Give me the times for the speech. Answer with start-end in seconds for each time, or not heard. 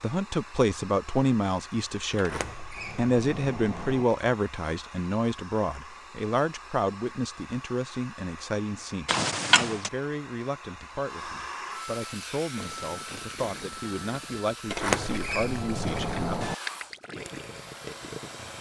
0.0-16.4.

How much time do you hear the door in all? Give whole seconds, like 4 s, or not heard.
5 s.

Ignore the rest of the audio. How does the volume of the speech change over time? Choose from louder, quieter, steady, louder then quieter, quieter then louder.
quieter.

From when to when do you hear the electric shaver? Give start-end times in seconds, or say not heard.
not heard.